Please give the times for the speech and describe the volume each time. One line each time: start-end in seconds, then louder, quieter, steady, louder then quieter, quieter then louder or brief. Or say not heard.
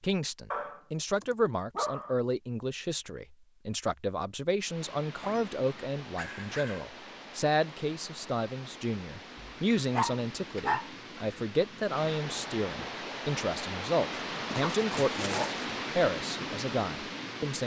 0.0-17.6 steady.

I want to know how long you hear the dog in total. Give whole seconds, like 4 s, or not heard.
6 s.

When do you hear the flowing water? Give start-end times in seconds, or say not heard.
4.5-17.6.